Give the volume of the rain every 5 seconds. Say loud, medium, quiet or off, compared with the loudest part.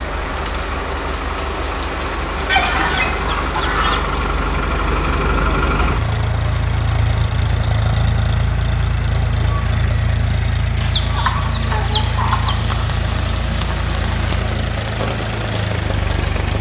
loud, medium, loud, loud.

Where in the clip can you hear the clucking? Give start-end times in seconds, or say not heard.
2.5-4.2, 10.8-12.7.